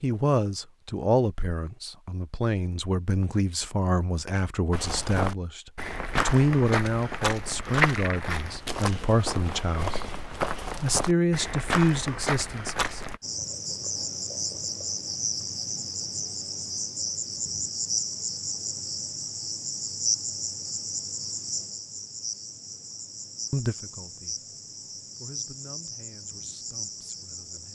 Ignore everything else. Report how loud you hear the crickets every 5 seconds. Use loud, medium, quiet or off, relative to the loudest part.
off, off, loud, loud, loud, medium.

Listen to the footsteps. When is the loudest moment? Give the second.
8 s.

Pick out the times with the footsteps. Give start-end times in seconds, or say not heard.
4.7-13.2.